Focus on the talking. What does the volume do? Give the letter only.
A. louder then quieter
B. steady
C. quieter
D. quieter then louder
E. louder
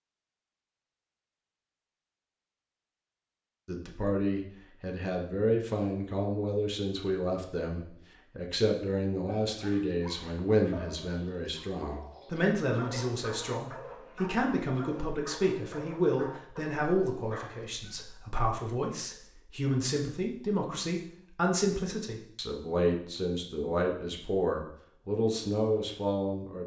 B.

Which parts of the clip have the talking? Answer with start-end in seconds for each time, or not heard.
3.6-26.6.